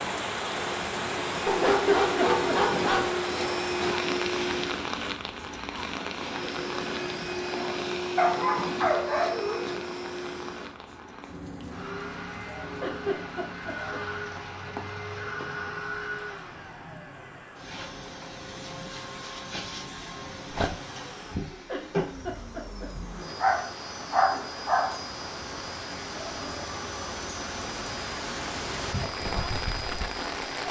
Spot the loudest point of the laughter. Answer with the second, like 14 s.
2 s.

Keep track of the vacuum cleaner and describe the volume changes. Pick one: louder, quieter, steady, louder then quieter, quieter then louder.
quieter.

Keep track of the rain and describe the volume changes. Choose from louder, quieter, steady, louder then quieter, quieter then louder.
quieter then louder.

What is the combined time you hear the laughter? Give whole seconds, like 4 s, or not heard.
4 s.